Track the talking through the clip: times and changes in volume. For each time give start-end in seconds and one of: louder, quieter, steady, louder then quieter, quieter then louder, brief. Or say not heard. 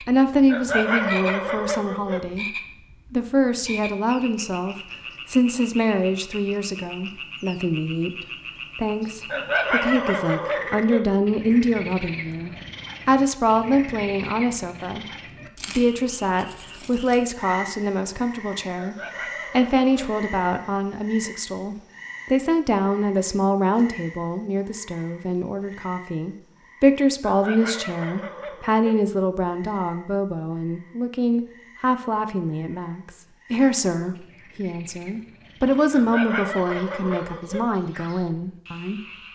0.0-39.0 steady.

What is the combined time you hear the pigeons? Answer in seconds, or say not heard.
not heard.